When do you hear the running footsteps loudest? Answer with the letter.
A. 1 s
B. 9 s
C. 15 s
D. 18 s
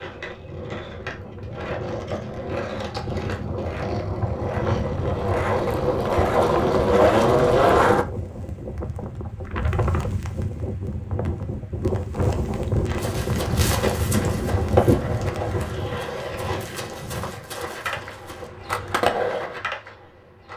C.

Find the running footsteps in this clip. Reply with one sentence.
You can hear the running footsteps from 12.9 to 18.5 s.